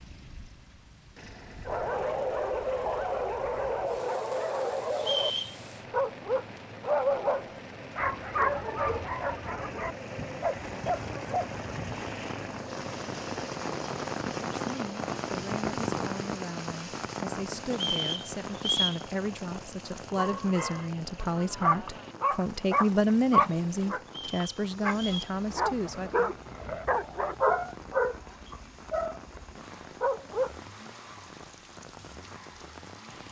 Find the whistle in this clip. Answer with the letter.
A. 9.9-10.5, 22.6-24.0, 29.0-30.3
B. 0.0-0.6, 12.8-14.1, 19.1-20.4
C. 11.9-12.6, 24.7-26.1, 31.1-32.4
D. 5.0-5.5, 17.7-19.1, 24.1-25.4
D.